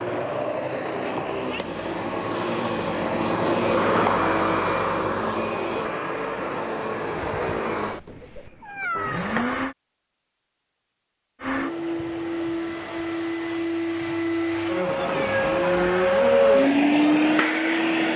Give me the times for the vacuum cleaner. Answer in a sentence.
You can hear the vacuum cleaner from 0.0 to 9.8 s and from 11.4 to 18.1 s.